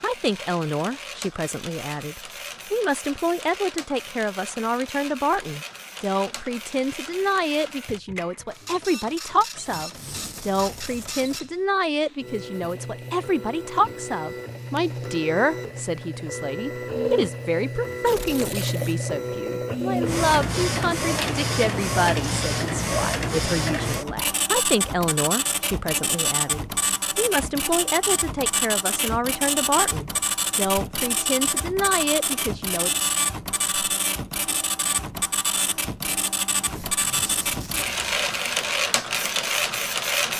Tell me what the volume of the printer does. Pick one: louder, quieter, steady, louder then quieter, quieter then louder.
louder.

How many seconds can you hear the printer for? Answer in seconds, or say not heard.
40 s.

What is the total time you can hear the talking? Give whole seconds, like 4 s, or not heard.
33 s.